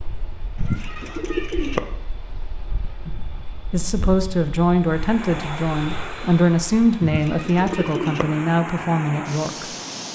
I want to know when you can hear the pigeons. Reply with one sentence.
You can hear the pigeons from 0.6 to 1.8 s and from 7.0 to 8.2 s.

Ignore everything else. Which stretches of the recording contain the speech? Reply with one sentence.
The speech can be heard from 3.0 to 9.7 s.